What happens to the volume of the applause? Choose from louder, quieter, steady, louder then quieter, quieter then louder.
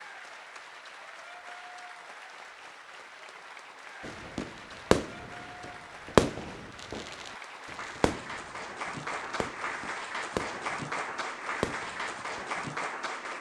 louder.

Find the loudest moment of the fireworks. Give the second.
6 s.